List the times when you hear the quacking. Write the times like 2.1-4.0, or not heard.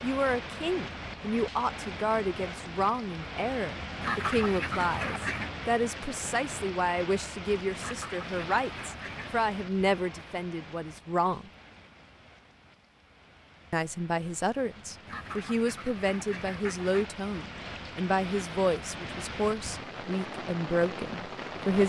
4.0-5.5, 7.8-9.4, 15.1-17.1.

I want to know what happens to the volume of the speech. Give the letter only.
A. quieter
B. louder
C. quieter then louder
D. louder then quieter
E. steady
E.